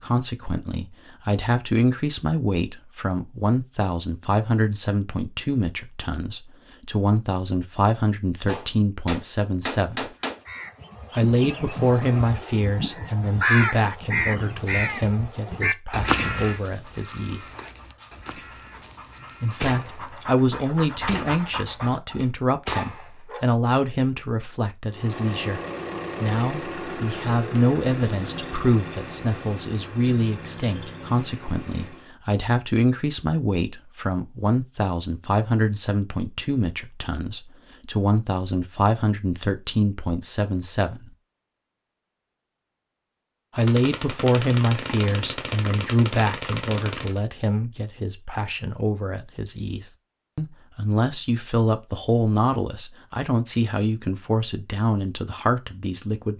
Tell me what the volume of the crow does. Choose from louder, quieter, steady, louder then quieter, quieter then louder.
louder then quieter.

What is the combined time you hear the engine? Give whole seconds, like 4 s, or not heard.
7 s.